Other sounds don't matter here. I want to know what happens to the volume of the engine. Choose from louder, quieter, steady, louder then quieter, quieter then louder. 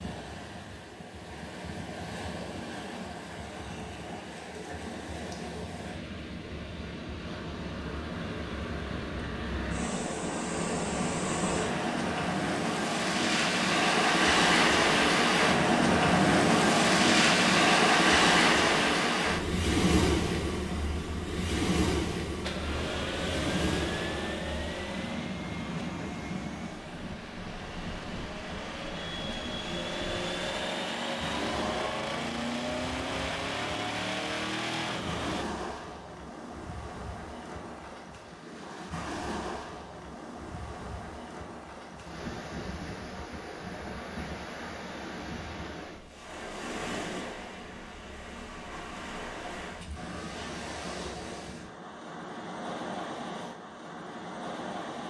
quieter then louder.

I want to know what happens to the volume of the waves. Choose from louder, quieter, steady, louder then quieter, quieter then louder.
louder then quieter.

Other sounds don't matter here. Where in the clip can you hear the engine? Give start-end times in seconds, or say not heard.
22.4-35.5.